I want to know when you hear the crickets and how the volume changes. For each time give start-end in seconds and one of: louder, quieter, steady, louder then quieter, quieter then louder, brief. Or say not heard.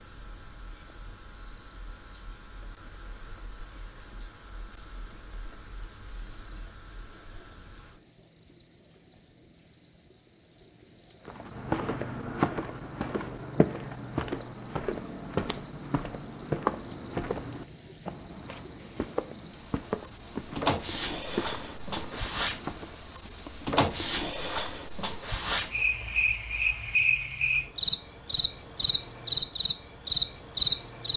0.0-31.1 louder.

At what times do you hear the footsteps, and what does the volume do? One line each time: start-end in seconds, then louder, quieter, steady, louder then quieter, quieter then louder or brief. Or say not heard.
11.2-23.4 quieter.